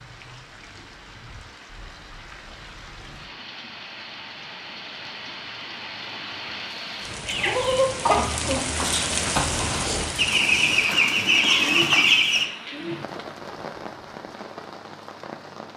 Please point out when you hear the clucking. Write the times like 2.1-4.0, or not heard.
7.2-12.4.